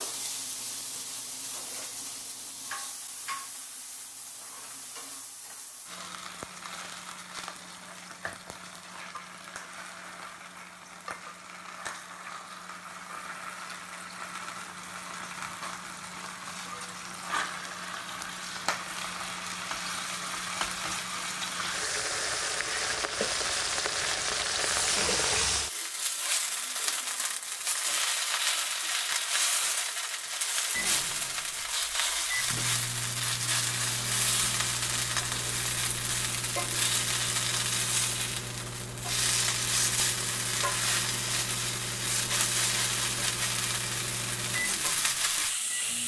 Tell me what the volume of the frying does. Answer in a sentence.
The loudness of the frying goes up.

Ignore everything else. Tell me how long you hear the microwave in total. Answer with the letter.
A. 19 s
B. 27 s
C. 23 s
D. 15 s
D.